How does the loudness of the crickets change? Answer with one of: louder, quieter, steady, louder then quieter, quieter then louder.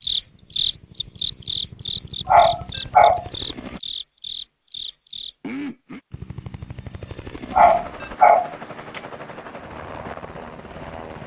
quieter.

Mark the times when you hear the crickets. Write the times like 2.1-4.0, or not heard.
0.0-6.0.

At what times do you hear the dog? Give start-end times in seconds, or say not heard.
2.2-3.2, 7.5-9.0.